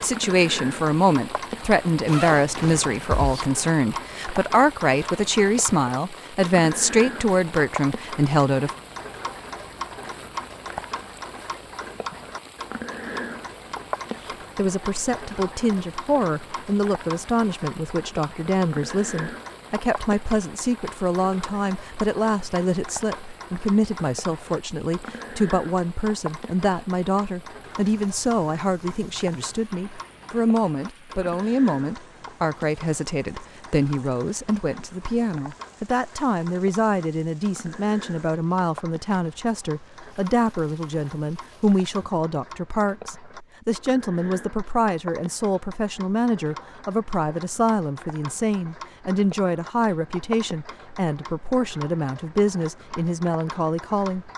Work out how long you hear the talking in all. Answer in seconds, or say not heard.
49 s.